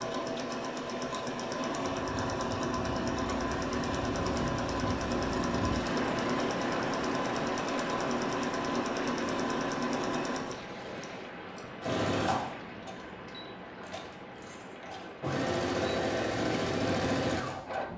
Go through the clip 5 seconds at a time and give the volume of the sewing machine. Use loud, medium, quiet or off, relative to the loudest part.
loud, loud, medium, loud.